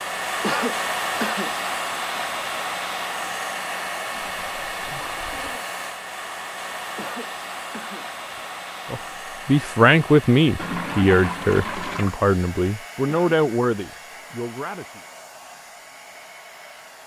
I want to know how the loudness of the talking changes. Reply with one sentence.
The volume of the talking goes down.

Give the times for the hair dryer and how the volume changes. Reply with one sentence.
The hair dryer can be heard from 0.0 to 17.0 s, getting quieter.